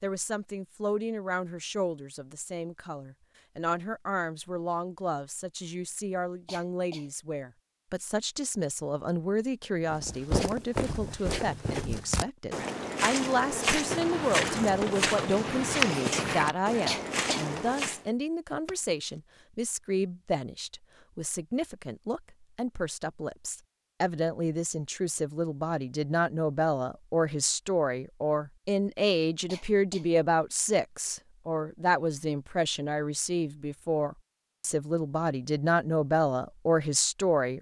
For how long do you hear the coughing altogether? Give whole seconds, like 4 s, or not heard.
2 s.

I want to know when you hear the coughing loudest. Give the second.
17 s.